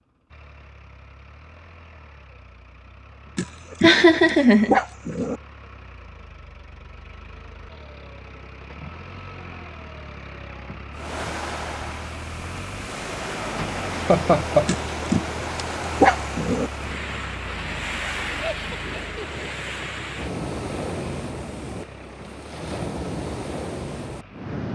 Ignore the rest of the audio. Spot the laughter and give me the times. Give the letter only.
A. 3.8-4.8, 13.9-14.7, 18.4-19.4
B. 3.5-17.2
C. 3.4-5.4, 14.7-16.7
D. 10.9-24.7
A.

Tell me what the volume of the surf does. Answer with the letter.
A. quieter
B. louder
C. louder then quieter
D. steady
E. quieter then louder
D.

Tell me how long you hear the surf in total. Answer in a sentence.
You can hear the surf for 14 seconds altogether.